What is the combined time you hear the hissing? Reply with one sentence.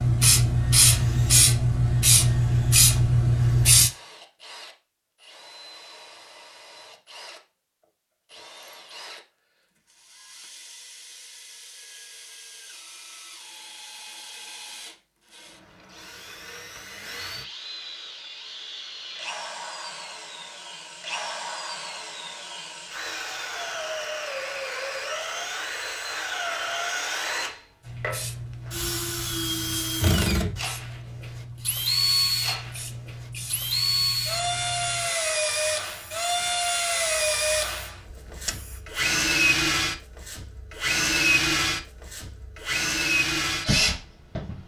You can hear the hissing for 15 seconds altogether.